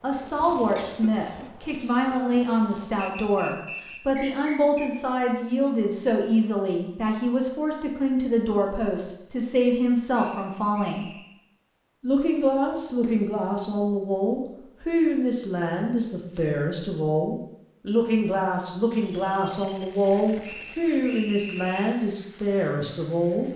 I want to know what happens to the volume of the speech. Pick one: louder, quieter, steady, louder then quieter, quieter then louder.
steady.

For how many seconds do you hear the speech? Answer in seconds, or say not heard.
23 s.